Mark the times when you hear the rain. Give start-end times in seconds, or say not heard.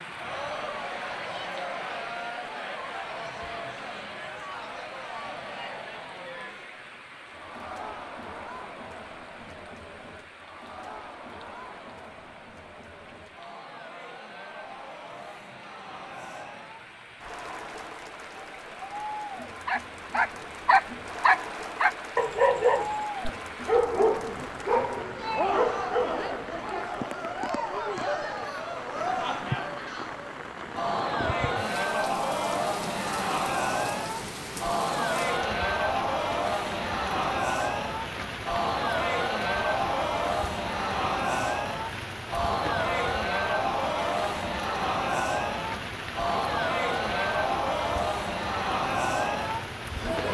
0.0-50.2.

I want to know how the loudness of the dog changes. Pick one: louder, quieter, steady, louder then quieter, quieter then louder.
quieter.